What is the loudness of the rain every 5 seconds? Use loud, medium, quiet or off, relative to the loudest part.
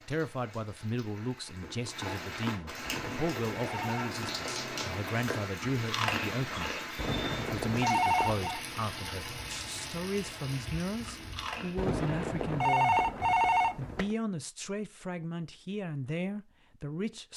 loud, loud, medium, off.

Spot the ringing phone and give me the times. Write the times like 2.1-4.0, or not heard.
2.9-4.2, 7.0-8.6, 11.8-14.2.